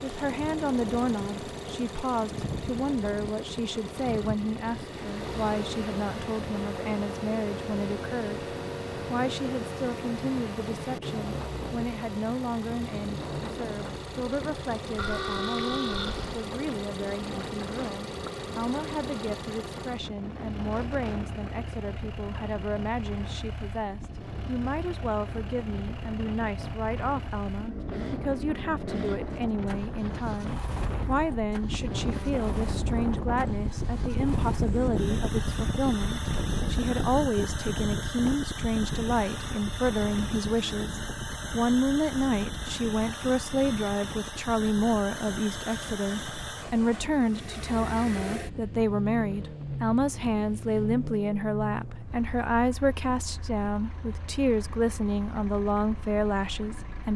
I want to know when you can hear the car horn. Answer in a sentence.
You can hear the car horn from 14.9 to 16.4 s.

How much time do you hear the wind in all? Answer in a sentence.
You can hear the wind for 57 seconds altogether.